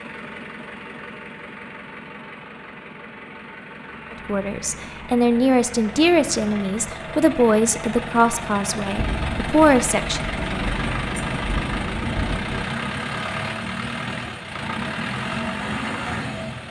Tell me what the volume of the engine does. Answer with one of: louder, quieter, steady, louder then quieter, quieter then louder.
louder.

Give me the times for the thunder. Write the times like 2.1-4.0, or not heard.
8.9-12.7.